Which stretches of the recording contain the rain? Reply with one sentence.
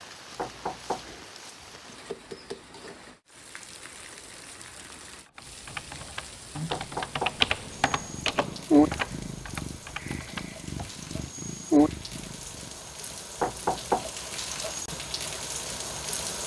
The rain can be heard from 0.0 to 16.4 s.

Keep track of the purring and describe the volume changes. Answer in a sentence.
The loudness of the purring goes down, then up.